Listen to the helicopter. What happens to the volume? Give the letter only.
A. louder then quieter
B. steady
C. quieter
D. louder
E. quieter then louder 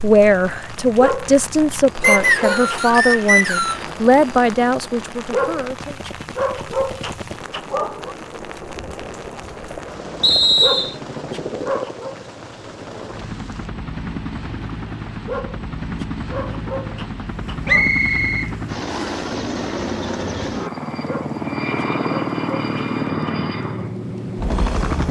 D.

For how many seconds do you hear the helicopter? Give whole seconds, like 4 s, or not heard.
25 s.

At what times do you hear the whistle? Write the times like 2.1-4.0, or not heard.
2.0-3.9, 10.2-10.9, 17.6-19.2.